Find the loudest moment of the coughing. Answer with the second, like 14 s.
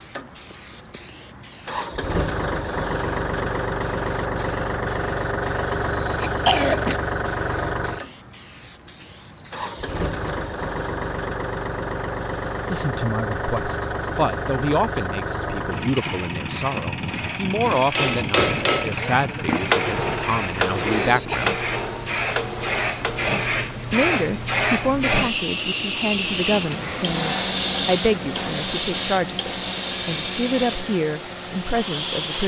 7 s.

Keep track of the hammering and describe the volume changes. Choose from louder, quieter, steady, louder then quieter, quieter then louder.
quieter.